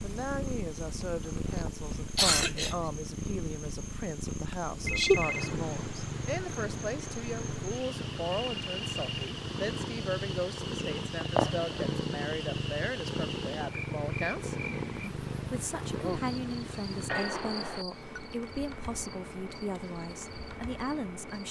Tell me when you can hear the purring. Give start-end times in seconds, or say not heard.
0.0-17.1.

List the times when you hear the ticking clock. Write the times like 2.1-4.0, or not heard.
not heard.